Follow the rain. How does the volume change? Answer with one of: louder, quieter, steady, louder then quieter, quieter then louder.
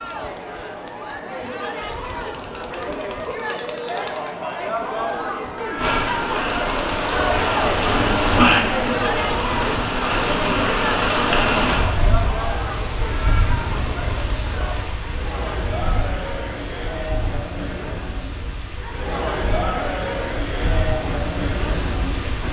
quieter.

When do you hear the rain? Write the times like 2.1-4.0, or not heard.
5.8-22.4.